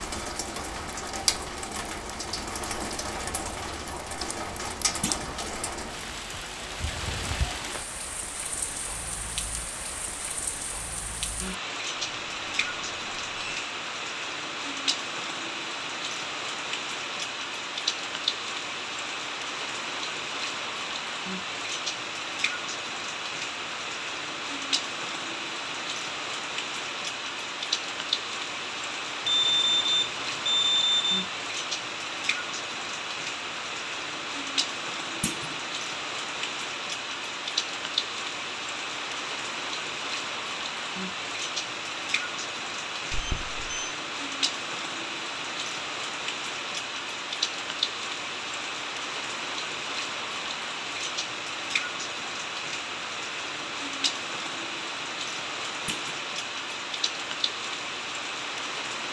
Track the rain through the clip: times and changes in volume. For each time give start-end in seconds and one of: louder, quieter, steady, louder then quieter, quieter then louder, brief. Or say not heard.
0.0-59.0 steady.